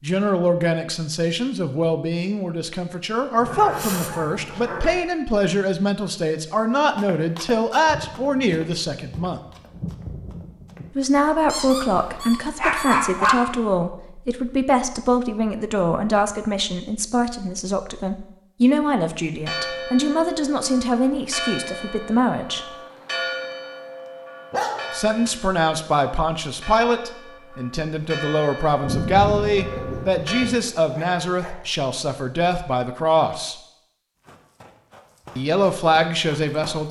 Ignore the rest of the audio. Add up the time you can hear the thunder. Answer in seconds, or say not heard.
5 s.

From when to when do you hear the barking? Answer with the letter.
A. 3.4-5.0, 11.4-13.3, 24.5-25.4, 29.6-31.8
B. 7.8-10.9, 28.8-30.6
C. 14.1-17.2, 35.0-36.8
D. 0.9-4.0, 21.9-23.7
A.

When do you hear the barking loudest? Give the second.
13 s.